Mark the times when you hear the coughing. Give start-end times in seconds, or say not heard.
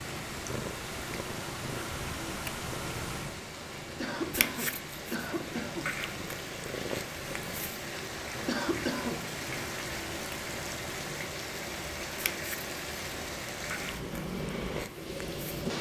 4.0-5.9, 8.4-9.2.